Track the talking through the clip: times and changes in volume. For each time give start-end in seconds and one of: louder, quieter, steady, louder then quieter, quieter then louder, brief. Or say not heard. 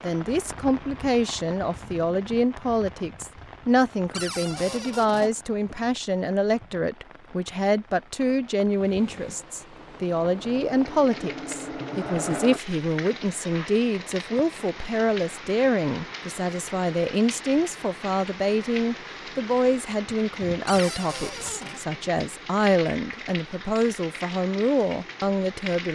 0.0-25.9 steady.